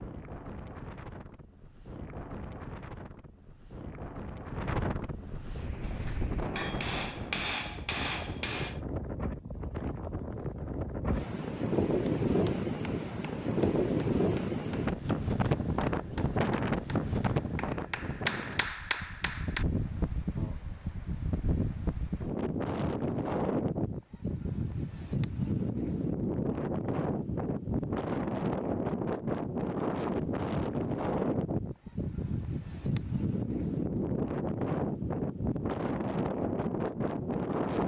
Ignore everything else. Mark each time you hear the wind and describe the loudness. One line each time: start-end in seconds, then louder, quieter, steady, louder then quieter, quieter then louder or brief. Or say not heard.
0.0-37.8 louder.